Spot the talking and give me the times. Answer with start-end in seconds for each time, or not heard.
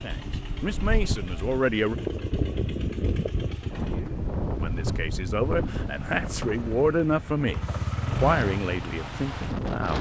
0.0-1.9, 4.5-9.9.